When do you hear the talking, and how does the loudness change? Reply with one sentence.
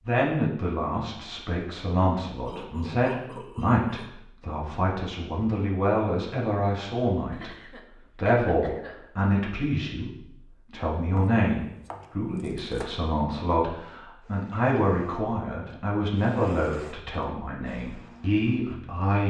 The talking can be heard from 0.1 to 19.2 s, at a steady volume.